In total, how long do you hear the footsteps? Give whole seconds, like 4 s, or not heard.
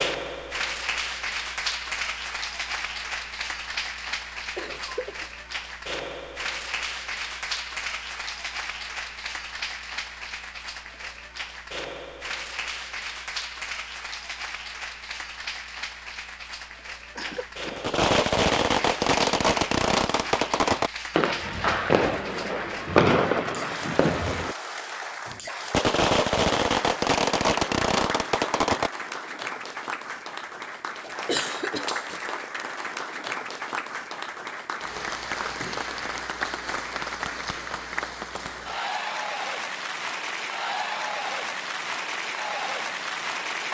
not heard.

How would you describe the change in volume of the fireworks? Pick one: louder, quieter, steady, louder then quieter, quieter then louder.
steady.